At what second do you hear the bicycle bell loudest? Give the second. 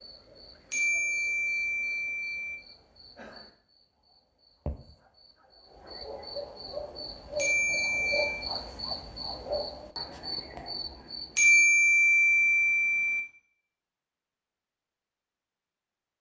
12 s.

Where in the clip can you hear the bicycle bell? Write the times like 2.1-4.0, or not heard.
0.7-2.5, 7.3-8.4, 11.3-13.2.